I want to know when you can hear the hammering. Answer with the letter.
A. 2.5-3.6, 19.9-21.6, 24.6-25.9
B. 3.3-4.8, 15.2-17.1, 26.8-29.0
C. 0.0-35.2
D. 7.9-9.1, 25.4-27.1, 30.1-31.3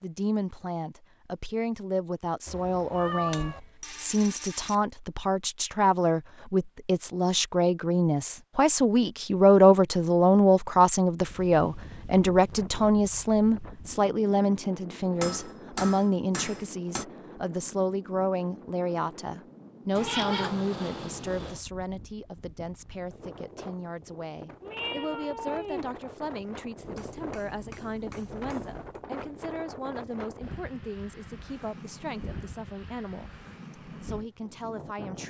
B.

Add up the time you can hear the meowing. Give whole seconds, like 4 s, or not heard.
4 s.